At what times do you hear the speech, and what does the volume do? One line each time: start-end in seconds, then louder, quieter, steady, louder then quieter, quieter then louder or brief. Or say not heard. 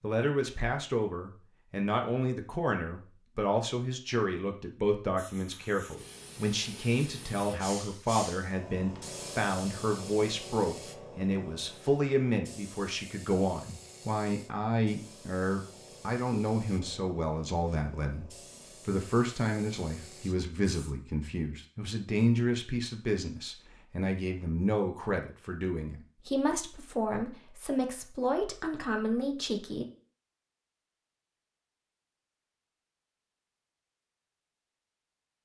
0.0-29.9 steady.